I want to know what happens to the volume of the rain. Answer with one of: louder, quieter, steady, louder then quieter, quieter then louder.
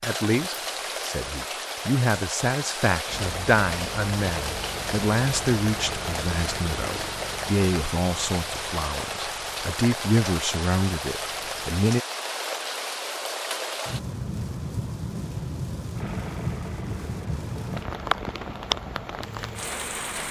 steady.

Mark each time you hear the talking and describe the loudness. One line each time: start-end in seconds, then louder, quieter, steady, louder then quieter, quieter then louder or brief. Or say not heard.
0.0-12.0 steady.